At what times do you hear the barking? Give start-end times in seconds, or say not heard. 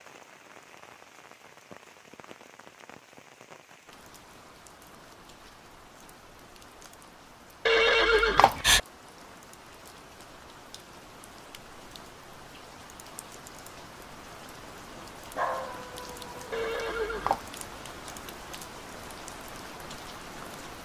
15.3-16.7.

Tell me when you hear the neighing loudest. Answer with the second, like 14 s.
8 s.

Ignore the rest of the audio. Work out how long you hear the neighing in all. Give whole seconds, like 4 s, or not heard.
2 s.